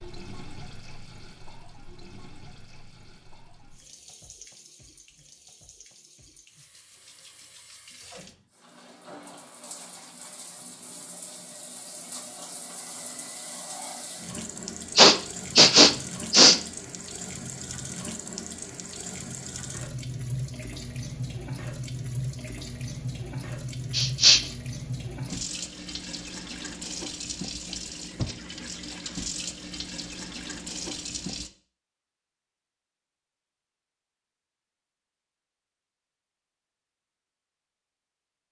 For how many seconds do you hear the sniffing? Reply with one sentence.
You can hear the sniffing for 2 seconds altogether.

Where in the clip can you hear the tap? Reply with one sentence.
The tap can be heard from 0.0 to 31.5 s.